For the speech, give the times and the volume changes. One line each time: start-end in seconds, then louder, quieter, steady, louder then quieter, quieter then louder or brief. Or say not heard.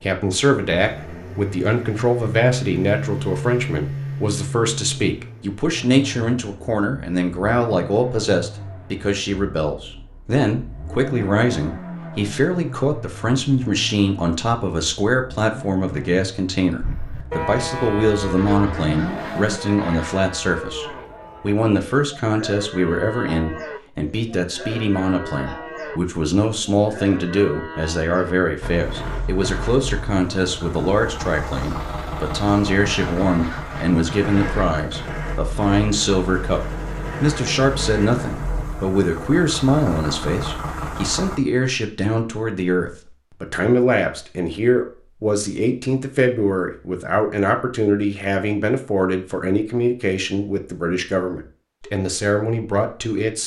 0.0-53.4 steady.